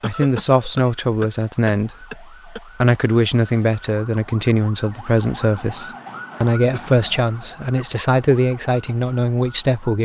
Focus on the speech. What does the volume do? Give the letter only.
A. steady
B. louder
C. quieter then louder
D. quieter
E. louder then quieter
A.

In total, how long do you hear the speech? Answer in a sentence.
You can hear the speech for 10 seconds altogether.